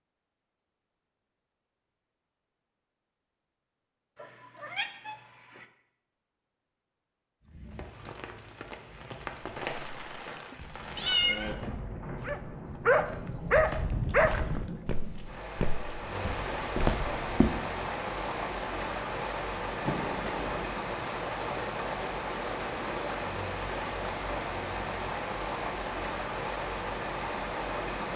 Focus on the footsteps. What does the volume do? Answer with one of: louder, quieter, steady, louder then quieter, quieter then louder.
louder.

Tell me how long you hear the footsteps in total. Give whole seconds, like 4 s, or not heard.
8 s.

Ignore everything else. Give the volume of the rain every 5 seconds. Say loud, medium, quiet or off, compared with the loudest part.
off, medium, medium, loud, loud, loud.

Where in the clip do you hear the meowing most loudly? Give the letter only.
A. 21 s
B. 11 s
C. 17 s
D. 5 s
B.